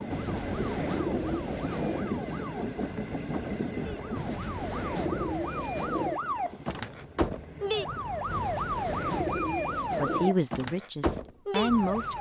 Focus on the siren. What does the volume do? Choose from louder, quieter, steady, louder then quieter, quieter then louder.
louder.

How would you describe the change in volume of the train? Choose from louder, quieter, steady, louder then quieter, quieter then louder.
quieter.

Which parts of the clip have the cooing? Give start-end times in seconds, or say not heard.
0.1-2.1, 4.2-6.2, 8.3-10.3.